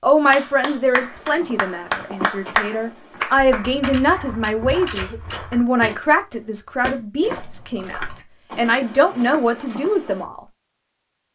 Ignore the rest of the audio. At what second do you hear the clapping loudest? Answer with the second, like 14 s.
2 s.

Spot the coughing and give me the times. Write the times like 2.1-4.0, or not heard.
4.9-5.5.